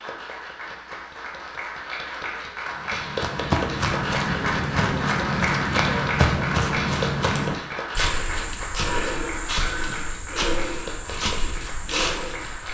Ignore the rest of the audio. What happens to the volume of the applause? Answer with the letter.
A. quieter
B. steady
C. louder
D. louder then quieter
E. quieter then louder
D.